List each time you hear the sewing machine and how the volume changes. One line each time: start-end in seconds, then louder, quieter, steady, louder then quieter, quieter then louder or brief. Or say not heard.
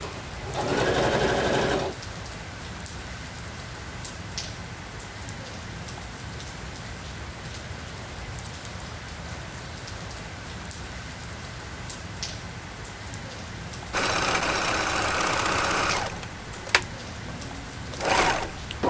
0.0-1.9 brief
13.9-18.8 quieter then louder.